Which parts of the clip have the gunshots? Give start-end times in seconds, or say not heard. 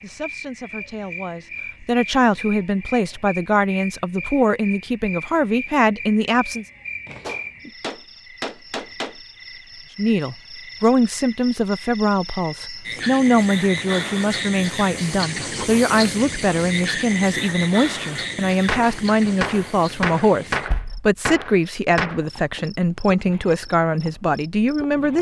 7.2-9.2, 18.6-22.2.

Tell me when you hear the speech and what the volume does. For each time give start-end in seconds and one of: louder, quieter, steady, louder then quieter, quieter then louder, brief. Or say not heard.
0.0-6.7 louder
9.9-25.1 steady.